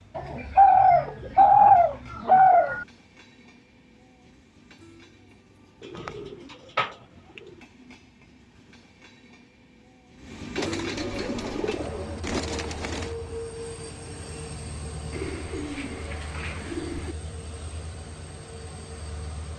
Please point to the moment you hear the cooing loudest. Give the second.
2 s.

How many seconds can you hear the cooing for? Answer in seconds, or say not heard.
9 s.